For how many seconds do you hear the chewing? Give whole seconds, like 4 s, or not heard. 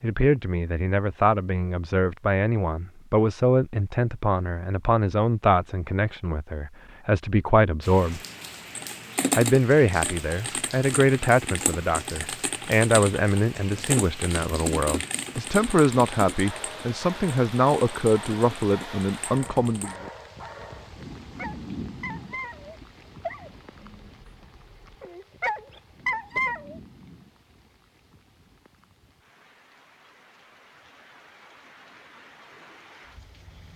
not heard.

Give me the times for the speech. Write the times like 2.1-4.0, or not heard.
0.0-8.2, 9.3-19.9.